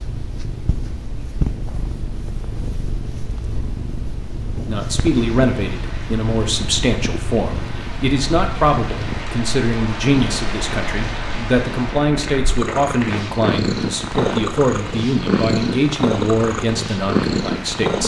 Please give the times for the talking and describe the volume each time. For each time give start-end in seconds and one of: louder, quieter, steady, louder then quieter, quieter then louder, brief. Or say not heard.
4.7-18.0 steady.